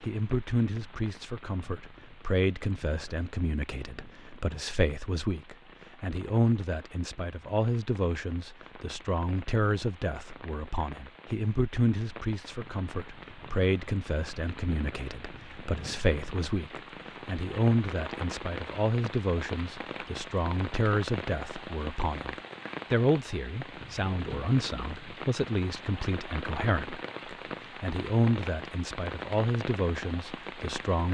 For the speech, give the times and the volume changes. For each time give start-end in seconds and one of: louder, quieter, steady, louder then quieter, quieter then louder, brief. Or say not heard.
0.0-31.0 steady.